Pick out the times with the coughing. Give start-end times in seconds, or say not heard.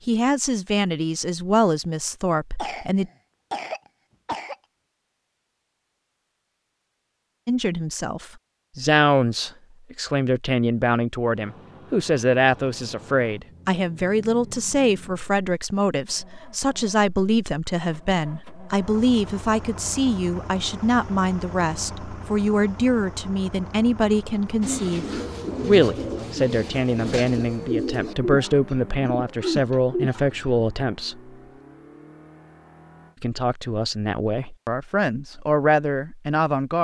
2.5-4.5.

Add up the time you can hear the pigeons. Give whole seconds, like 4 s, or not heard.
6 s.